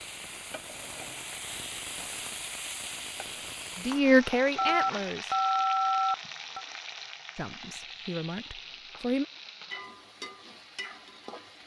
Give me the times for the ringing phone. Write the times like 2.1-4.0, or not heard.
4.5-6.7.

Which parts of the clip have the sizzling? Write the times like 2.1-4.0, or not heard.
0.0-11.6.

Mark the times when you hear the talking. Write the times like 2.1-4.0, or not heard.
3.8-5.3, 7.3-9.2.